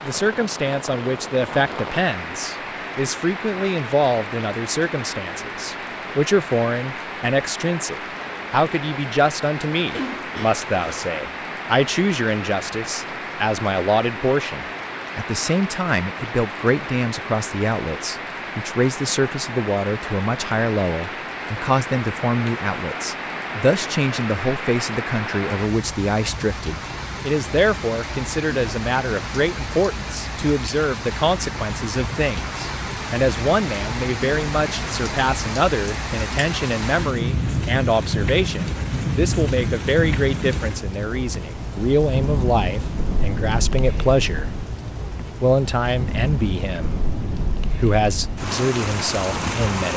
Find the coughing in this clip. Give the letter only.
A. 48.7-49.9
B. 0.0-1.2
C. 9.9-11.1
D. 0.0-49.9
C.